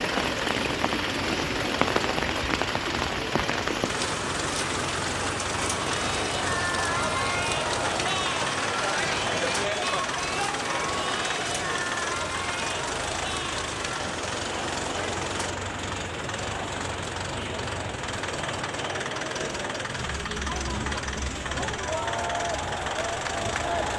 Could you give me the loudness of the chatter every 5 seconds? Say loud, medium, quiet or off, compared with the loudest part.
off, loud, loud, medium, loud.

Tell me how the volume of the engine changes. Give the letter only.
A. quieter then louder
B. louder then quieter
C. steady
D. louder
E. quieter
C.